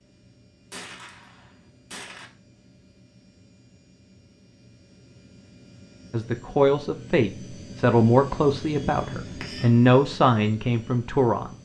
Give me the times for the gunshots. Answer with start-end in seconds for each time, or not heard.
0.7-2.3.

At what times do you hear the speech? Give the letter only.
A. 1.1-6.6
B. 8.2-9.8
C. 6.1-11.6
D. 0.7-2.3
C.